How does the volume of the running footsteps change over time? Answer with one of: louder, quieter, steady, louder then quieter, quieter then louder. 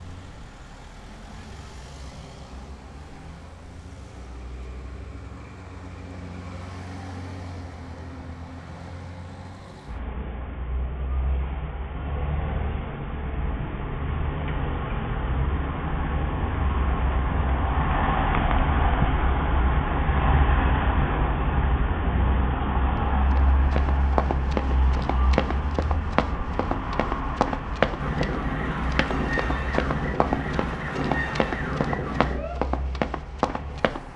steady.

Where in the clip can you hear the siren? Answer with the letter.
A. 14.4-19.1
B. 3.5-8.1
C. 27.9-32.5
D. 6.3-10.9
C.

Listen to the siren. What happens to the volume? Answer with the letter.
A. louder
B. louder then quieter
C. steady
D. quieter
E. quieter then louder
C.